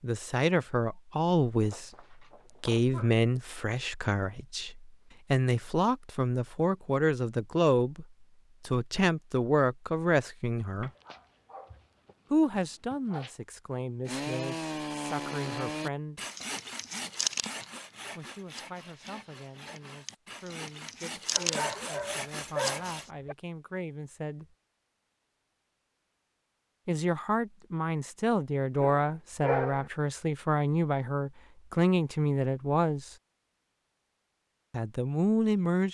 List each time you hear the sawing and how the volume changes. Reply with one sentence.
You can hear the sawing from 14.1 to 23.1 s, getting quieter then louder.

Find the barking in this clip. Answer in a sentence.
You can hear the barking from 1.6 to 3.1 s, from 10.8 to 13.3 s, from 21.4 to 23.4 s and from 28.8 to 29.9 s.